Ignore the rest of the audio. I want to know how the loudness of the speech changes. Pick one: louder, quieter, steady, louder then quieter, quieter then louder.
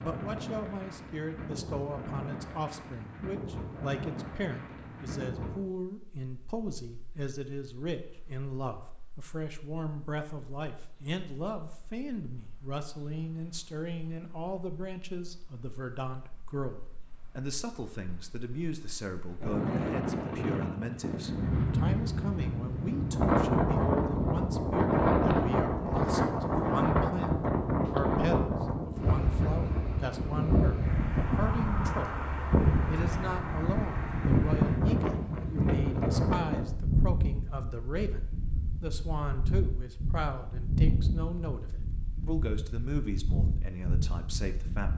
steady.